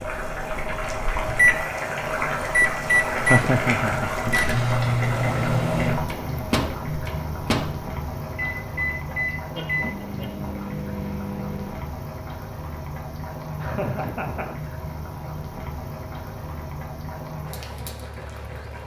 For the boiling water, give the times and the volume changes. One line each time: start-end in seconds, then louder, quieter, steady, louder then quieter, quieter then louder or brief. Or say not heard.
0.0-18.8 quieter.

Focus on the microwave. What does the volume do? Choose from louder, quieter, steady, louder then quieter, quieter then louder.
quieter.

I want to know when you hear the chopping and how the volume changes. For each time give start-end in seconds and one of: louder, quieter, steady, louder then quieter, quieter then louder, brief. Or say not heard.
not heard.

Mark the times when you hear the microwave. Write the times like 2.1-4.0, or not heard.
0.0-11.8.